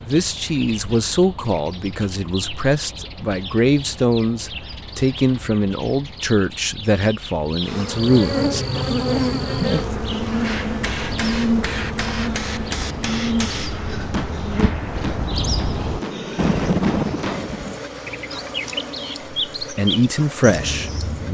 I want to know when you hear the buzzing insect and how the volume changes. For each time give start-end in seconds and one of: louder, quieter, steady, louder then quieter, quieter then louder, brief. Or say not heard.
7.6-21.2 quieter.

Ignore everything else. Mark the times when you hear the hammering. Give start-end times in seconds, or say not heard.
10.4-17.4.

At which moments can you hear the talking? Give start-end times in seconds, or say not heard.
0.0-8.7, 19.6-21.2.